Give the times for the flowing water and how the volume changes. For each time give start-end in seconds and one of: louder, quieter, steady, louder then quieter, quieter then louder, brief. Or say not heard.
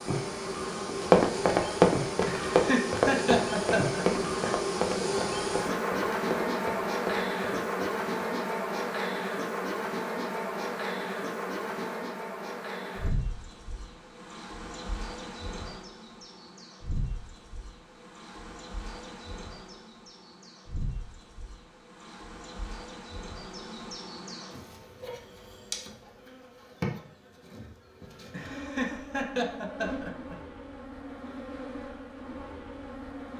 not heard.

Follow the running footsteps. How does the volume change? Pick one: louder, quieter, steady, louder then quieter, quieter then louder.
quieter.